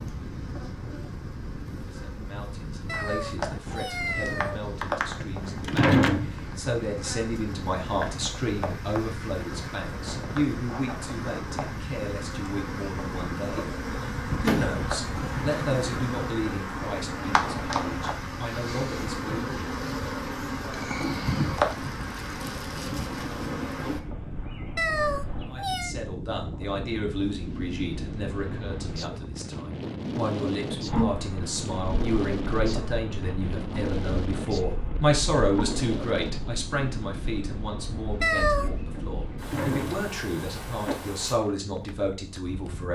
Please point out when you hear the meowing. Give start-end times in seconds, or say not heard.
2.9-4.6, 24.8-25.9, 38.2-38.7.